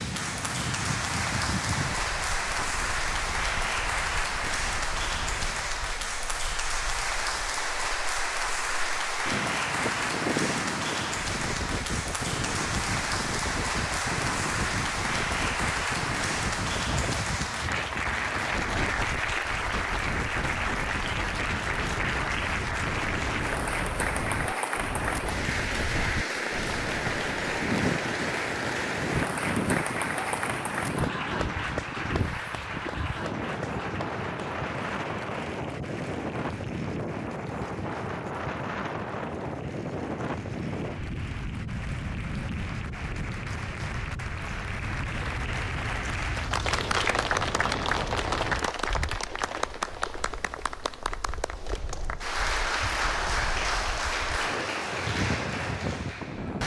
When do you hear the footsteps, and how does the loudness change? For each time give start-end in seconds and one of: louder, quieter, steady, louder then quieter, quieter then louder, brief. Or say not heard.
not heard.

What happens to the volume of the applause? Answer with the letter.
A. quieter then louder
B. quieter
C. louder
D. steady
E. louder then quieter
A.